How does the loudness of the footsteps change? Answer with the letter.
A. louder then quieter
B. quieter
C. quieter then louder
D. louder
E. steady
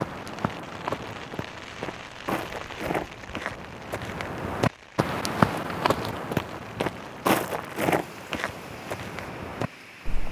A.